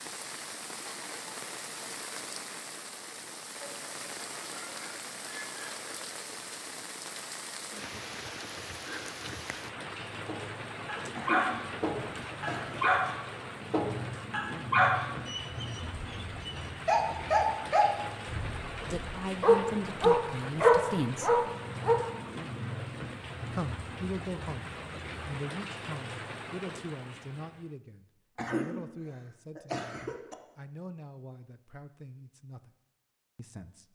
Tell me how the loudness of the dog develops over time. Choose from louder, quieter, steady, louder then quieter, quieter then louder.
louder.